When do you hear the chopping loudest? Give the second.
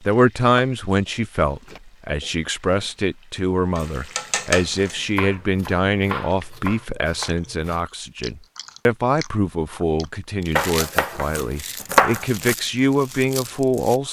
12 s.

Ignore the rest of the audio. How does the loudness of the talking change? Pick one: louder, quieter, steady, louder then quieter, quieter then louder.
steady.